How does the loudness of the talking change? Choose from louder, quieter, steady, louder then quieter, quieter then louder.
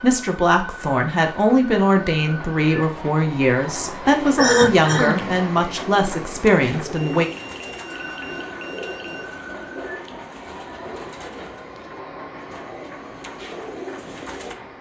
steady.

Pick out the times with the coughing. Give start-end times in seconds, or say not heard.
4.3-5.3.